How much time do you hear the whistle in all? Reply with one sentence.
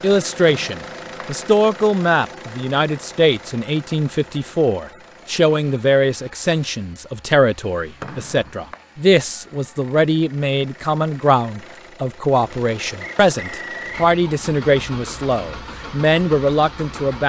You can hear the whistle for 3 seconds altogether.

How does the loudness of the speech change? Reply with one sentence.
The volume of the speech stays about the same.